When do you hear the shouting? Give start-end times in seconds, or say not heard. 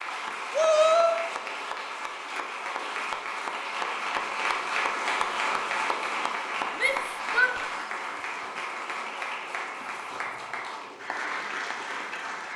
0.5-1.2, 6.8-7.5.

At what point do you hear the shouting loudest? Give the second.
1 s.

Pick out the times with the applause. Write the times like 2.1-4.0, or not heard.
0.0-12.5.